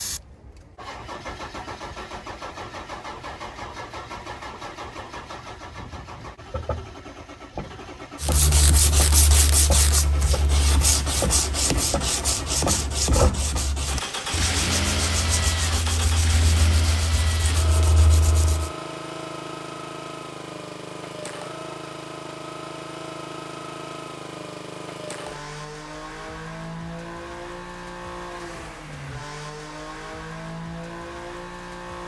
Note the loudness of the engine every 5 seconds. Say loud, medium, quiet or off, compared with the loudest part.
medium, medium, loud, loud, medium, medium, medium.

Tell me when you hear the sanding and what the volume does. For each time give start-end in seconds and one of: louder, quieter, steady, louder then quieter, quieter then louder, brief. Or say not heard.
8.2-18.7 quieter.